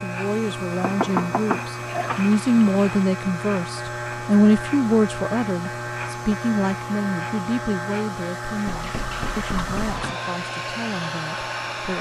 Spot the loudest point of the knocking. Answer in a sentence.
The loudest moment of the knocking is at 1 second.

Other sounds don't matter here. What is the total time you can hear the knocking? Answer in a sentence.
You can hear the knocking for 3 seconds altogether.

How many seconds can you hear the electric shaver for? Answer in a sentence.
The electric shaver can be heard for 12 seconds in total.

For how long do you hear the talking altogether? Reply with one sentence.
You can hear the talking for 12 seconds altogether.